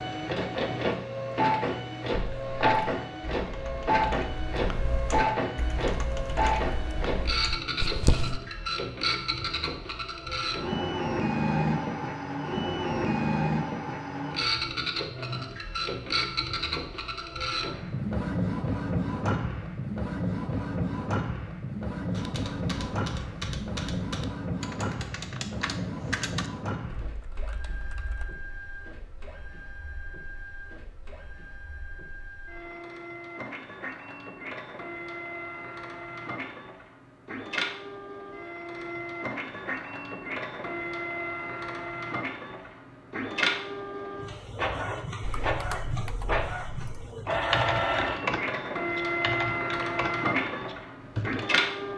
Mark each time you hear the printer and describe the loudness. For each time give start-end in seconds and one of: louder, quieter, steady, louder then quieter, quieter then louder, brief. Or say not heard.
0.0-51.9 quieter then louder.